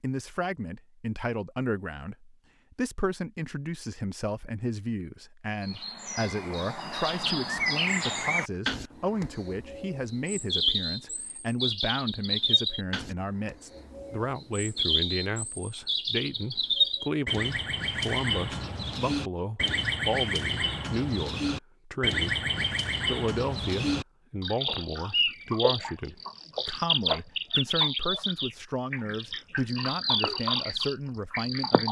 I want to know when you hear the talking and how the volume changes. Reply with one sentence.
The talking can be heard from 0.0 to 31.8 s, at a steady volume.